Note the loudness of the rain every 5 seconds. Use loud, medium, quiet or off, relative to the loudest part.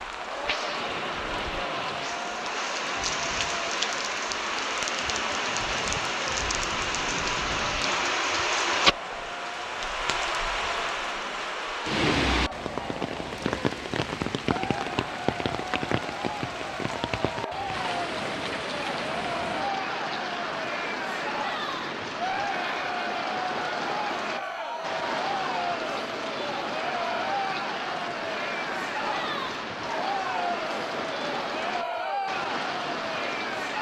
loud, loud, loud, medium, medium, medium, medium.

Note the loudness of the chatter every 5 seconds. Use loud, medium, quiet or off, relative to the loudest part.
medium, medium, medium, loud, loud, loud, loud.